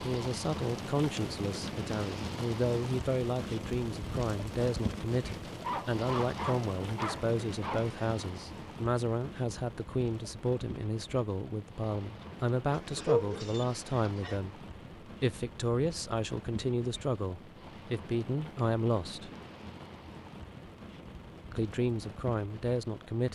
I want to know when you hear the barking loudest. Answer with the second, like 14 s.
13 s.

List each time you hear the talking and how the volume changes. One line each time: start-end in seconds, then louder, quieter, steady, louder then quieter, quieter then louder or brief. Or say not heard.
0.0-19.3 steady
21.5-23.3 brief.